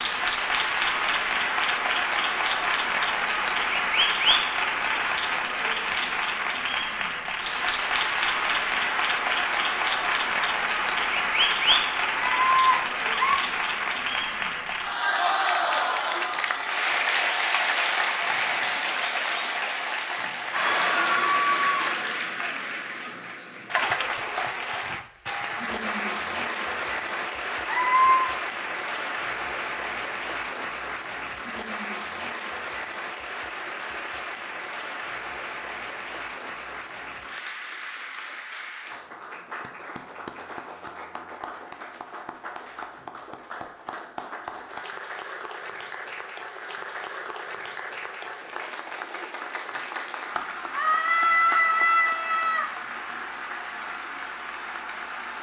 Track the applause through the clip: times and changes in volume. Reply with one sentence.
The applause can be heard from 0.0 to 55.3 s, getting quieter.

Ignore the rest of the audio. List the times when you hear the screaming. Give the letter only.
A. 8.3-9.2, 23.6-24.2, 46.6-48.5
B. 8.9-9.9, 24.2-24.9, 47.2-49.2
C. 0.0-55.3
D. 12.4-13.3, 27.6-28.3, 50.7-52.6
D.